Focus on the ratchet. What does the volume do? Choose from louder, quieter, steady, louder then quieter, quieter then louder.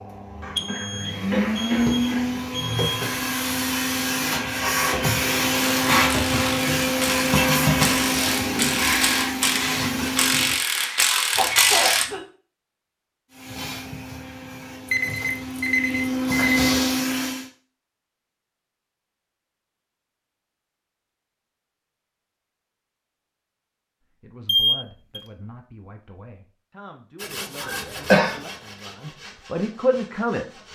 louder.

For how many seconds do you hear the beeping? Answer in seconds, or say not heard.
5 s.